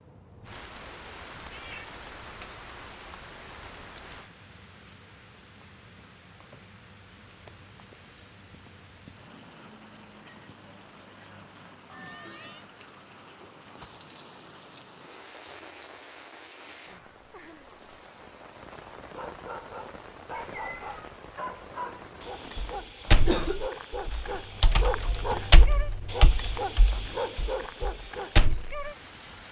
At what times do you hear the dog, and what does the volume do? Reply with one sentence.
You can hear the dog from 19.0 to 28.4 s, getting louder.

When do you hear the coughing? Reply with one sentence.
You can hear the coughing from 23.1 to 23.6 s.